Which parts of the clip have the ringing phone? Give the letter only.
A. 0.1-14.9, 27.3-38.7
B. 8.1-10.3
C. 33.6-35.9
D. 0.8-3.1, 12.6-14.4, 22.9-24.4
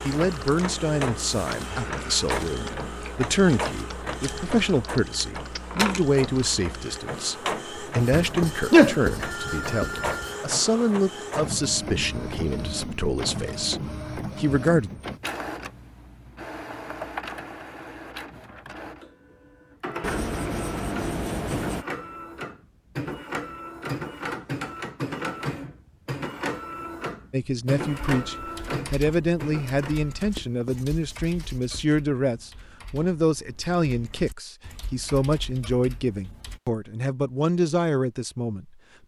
B.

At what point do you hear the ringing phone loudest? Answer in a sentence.
The loudest moment of the ringing phone is at 9 seconds.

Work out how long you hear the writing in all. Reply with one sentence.
You can hear the writing for 6 seconds altogether.